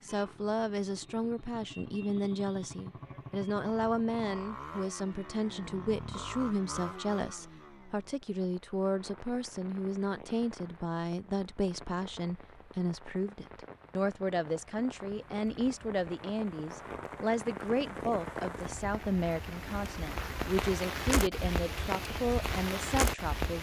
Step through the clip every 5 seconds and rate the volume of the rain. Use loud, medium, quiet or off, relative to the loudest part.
off, quiet, quiet, medium, loud.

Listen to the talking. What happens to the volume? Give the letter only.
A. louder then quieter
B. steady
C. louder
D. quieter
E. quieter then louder
B.